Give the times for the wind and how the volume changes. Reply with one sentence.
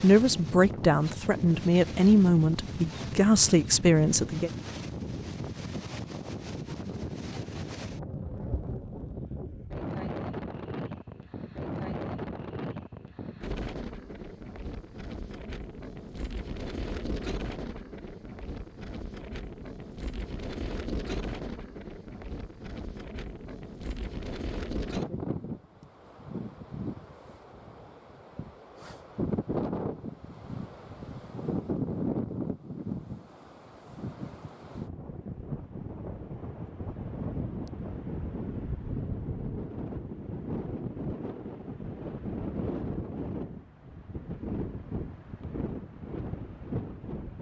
The wind can be heard from 0.0 to 47.3 s, at a steady volume.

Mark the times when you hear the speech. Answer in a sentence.
The speech can be heard from 0.0 to 4.5 s.